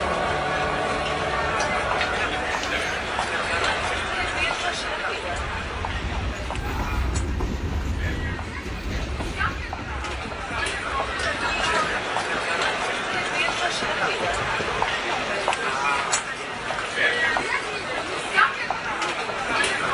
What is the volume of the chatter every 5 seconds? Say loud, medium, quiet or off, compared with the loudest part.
loud, medium, loud, loud.